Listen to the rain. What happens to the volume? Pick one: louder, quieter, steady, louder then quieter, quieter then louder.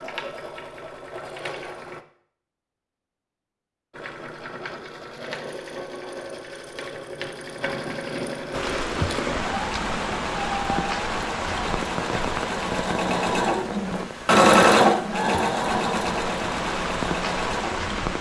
quieter then louder.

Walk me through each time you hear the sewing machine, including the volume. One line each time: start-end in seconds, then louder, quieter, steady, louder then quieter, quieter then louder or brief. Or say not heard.
0.0-2.0 brief
3.9-18.1 louder then quieter.